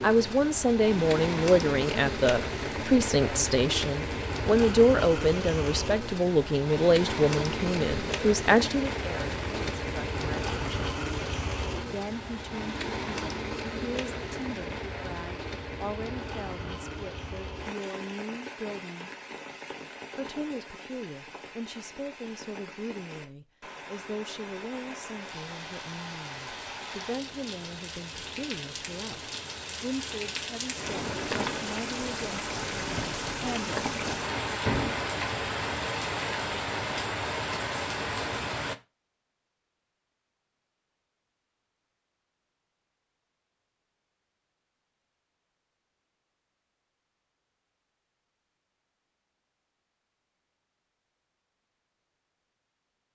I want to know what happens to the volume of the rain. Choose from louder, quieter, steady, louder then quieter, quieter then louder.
quieter then louder.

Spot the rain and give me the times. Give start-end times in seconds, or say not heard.
0.0-38.8.